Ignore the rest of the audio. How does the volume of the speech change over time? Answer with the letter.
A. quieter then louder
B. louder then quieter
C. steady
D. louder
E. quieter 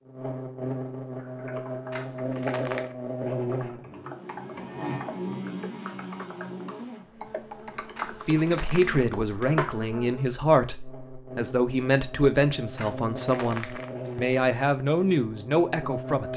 C.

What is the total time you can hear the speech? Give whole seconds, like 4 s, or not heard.
8 s.